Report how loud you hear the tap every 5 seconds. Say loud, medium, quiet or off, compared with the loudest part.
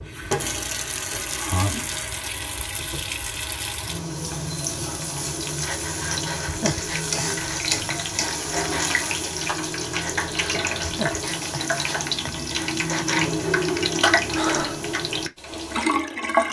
medium, loud, loud, loud.